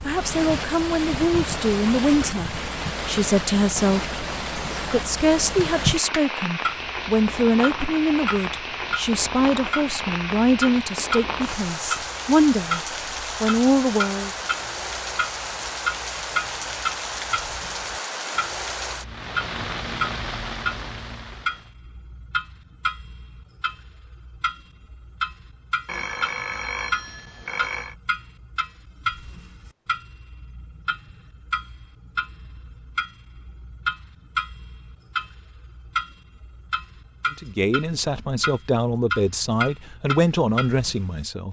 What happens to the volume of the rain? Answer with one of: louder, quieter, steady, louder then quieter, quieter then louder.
steady.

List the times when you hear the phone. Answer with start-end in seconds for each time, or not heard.
25.9-27.9.